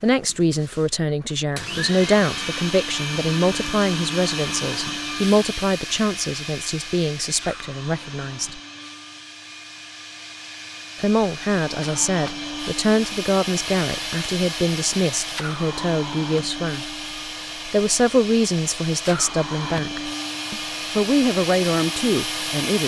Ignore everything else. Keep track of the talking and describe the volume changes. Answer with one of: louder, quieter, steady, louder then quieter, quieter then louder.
steady.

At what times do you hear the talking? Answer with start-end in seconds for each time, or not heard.
0.0-8.6, 11.0-16.9, 17.6-22.8.